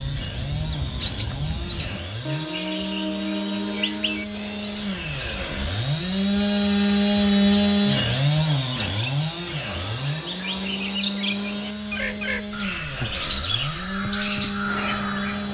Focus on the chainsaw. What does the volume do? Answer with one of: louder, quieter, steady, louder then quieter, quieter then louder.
louder then quieter.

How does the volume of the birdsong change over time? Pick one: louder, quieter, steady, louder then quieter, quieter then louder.
quieter then louder.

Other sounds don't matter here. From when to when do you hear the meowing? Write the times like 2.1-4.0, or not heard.
not heard.